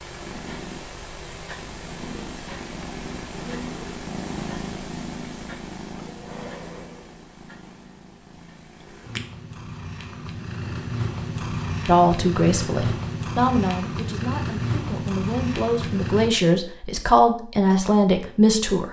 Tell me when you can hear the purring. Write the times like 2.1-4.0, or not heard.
0.0-16.3.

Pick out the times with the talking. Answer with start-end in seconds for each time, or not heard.
11.8-18.8.